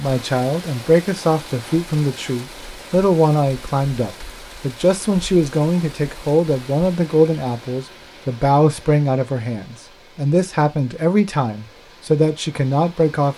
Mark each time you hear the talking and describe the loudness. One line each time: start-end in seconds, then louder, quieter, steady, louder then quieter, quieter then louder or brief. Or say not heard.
0.0-13.3 steady.